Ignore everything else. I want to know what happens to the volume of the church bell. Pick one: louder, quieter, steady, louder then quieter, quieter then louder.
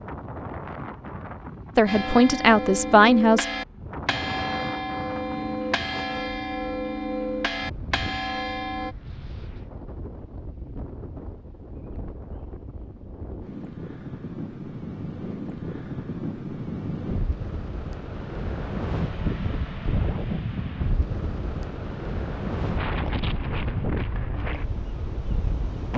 steady.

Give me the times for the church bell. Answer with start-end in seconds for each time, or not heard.
1.9-8.9.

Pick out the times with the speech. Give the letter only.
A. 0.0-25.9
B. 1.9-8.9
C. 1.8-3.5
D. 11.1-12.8
C.